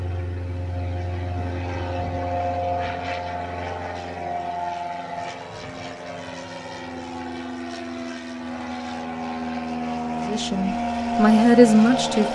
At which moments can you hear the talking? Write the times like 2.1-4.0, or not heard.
10.2-12.3.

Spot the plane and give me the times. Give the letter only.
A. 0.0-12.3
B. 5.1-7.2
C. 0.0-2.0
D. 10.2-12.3
A.